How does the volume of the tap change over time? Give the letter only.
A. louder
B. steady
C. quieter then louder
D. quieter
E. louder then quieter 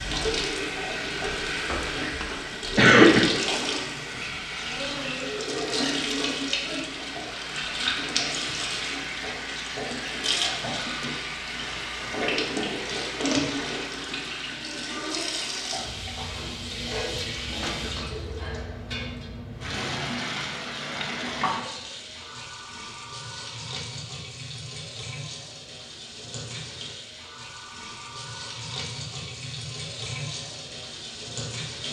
D.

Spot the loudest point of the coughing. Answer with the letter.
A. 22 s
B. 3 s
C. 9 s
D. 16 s
B.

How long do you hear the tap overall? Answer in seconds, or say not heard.
32 s.